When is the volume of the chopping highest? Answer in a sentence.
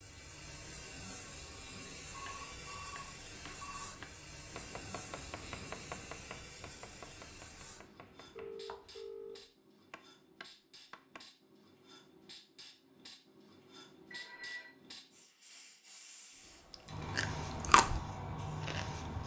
The volume of the chopping peaks at 6 seconds.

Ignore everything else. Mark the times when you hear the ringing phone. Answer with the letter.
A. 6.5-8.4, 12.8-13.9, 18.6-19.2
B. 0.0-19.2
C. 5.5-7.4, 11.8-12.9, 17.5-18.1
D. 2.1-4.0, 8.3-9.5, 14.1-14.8
D.